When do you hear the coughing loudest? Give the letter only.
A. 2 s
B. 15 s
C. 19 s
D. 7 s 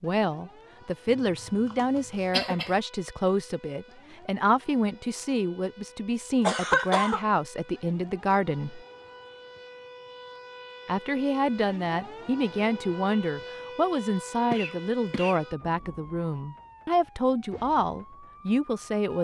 D.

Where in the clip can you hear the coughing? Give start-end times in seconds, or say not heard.
1.1-2.8, 6.4-7.2, 14.5-15.4.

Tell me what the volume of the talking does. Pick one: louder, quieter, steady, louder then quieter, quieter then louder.
steady.